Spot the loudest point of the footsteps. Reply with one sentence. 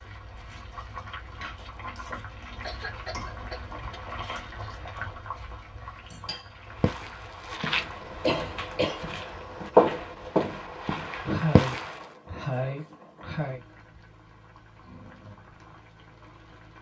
The volume of the footsteps peaks at 10 seconds.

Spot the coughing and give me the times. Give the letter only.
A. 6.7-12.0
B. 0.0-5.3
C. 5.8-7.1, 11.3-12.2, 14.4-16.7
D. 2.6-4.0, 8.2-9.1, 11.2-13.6
D.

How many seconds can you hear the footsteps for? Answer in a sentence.
The footsteps can be heard for 5 seconds in total.